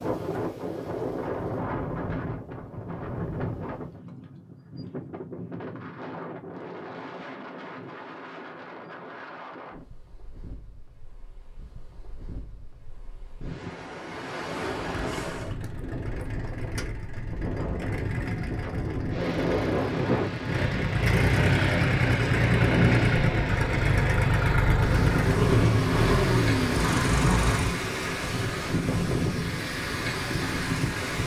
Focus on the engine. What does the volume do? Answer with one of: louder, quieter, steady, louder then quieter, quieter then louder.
louder.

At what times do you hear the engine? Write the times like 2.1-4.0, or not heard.
14.6-27.8.